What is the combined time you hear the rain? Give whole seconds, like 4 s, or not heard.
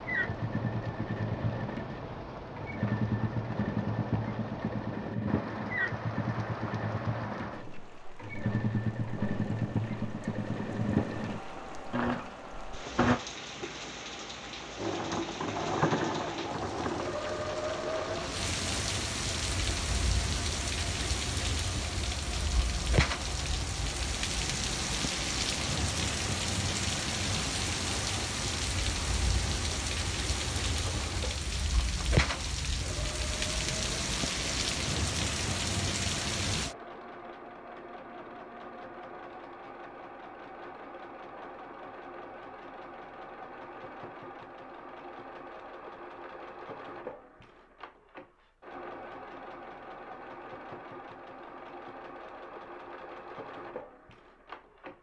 37 s.